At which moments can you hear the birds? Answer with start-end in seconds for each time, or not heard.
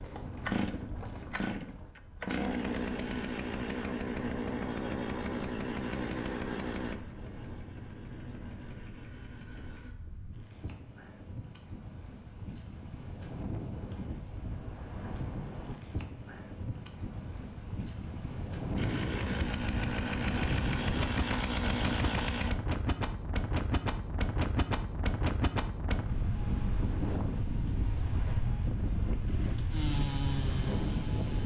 not heard.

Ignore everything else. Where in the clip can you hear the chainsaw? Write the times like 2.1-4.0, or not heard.
0.0-9.9, 18.8-22.6, 29.2-31.4.